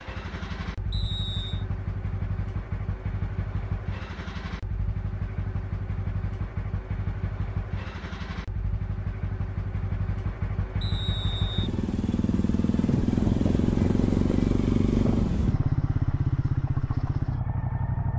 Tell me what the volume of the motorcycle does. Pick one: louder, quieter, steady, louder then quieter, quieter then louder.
louder.